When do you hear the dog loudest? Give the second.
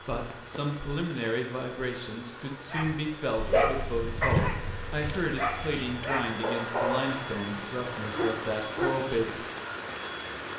4 s.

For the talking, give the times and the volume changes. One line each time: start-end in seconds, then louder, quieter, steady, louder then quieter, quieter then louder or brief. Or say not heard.
0.0-9.5 steady.